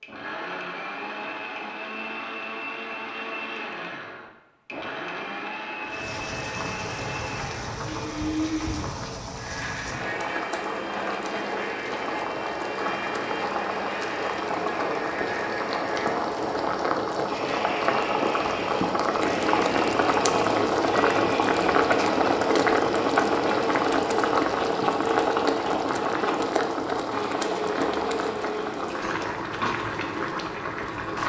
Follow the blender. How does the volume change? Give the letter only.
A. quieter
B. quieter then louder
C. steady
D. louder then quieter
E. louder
C.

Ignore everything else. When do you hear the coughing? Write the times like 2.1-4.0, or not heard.
not heard.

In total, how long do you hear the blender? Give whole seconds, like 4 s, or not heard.
29 s.